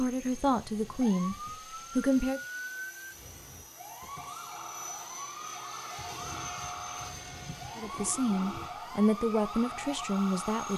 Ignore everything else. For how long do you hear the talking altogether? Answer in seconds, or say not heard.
5 s.